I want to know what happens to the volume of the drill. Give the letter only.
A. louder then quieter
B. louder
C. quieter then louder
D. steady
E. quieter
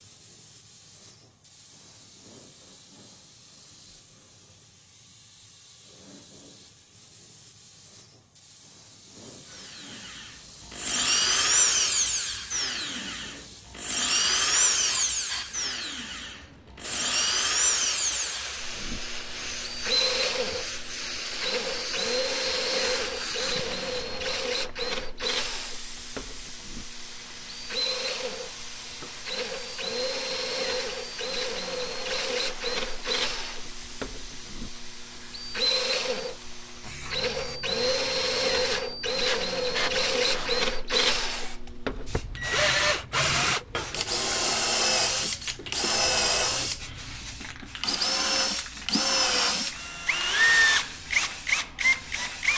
C.